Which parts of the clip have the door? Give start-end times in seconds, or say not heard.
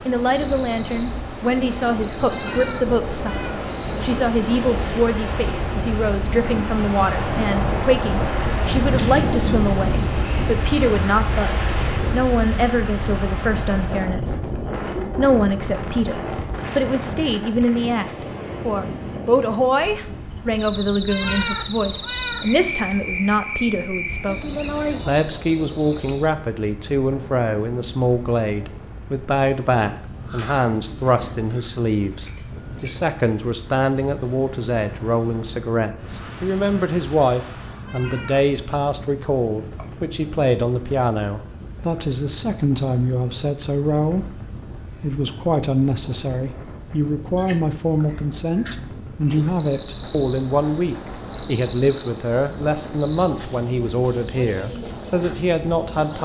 not heard.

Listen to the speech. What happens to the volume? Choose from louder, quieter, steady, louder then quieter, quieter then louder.
steady.